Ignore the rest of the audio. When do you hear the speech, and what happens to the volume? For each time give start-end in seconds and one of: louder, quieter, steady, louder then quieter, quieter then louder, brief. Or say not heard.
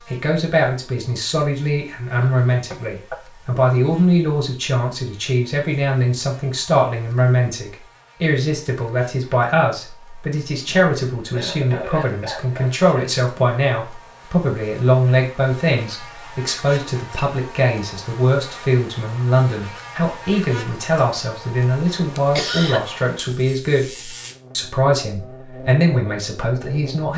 0.1-27.1 steady.